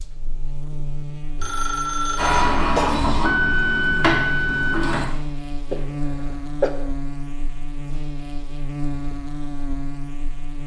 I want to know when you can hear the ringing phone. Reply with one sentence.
The ringing phone can be heard from 1.4 to 2.4 s.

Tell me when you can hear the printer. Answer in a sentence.
You can hear the printer from 2.1 to 5.0 s.